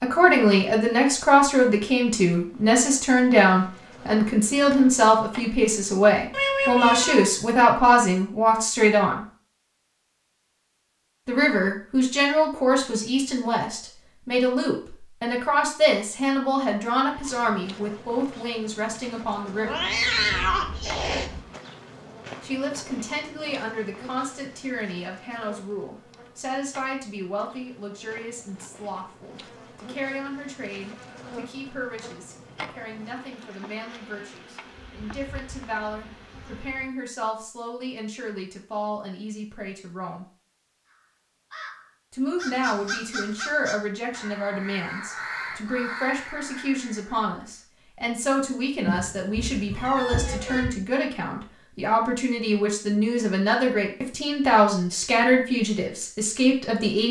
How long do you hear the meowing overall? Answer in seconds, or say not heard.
5 s.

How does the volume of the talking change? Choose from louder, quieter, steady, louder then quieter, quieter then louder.
quieter then louder.